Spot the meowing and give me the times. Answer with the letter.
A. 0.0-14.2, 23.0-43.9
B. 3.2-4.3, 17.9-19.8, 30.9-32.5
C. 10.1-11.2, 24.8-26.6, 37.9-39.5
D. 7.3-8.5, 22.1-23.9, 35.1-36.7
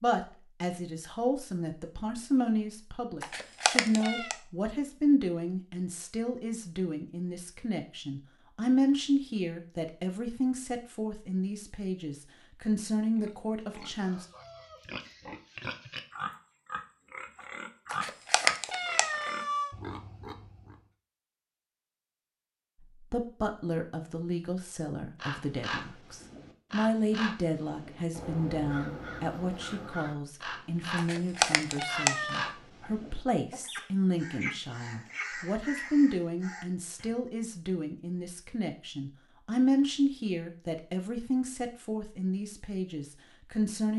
B.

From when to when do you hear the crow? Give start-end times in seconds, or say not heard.
25.1-37.1.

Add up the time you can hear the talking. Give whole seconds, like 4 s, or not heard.
35 s.